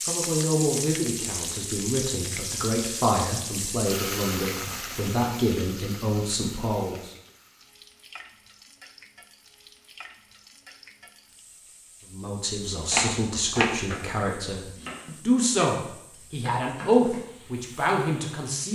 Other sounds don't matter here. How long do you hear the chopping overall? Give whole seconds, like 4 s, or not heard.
5 s.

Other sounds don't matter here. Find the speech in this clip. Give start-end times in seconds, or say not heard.
0.1-7.1, 12.1-18.7.